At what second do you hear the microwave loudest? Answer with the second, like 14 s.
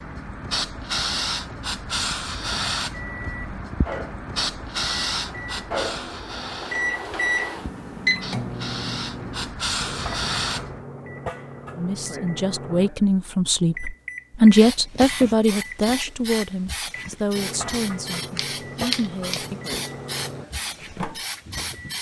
8 s.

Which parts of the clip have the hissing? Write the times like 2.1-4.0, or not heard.
0.0-10.8, 14.5-21.9.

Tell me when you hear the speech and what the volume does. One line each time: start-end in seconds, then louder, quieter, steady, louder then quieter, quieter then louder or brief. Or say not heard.
11.8-19.6 louder then quieter.